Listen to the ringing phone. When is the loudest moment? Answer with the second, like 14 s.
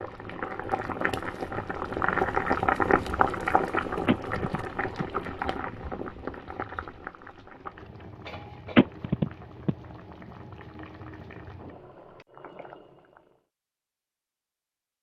9 s.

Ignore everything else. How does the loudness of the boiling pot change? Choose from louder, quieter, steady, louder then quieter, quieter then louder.
quieter.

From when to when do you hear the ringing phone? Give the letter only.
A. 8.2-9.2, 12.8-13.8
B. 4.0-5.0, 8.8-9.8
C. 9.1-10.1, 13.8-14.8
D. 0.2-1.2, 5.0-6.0
B.